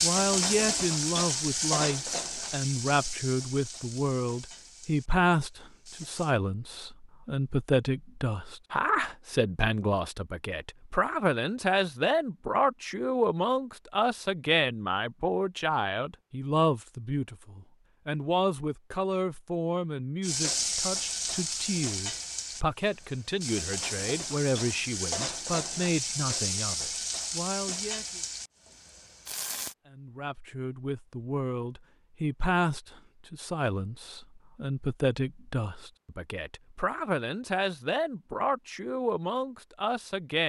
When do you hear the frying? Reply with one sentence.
The frying can be heard from 0.0 to 6.3 s and from 20.2 to 29.8 s.